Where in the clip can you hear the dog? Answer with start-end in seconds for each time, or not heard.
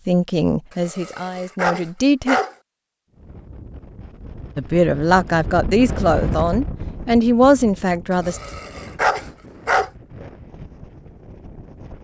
0.7-2.5, 8.1-9.9.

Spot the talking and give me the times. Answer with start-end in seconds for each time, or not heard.
0.1-2.4, 4.5-8.4.